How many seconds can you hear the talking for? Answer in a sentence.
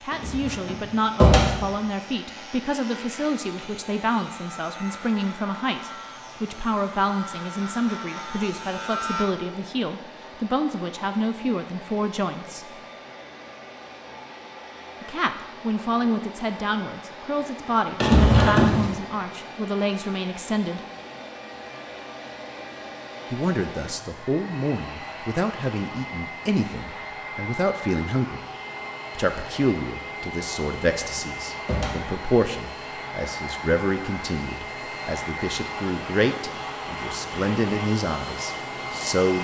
You can hear the talking for 34 seconds altogether.